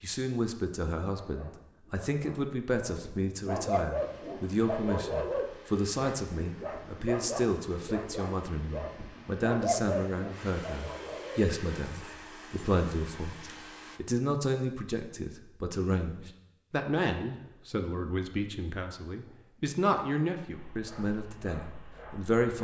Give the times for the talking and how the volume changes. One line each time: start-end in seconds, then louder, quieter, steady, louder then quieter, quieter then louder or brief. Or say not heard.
0.0-22.5 steady.